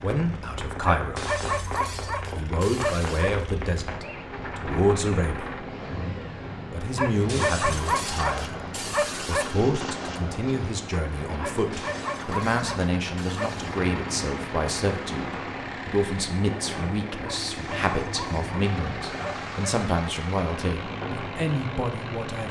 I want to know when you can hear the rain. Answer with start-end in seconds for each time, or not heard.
0.0-22.4.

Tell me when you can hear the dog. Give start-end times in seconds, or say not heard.
0.9-3.5, 7.0-9.6, 11.4-13.8, 17.4-19.8.